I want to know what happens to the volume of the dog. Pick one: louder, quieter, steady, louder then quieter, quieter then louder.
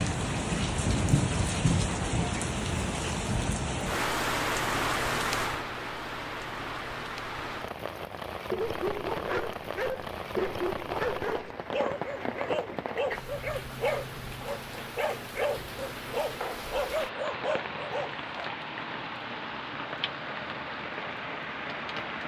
steady.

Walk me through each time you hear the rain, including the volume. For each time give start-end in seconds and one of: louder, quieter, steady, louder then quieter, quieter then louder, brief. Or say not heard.
0.0-22.2 quieter.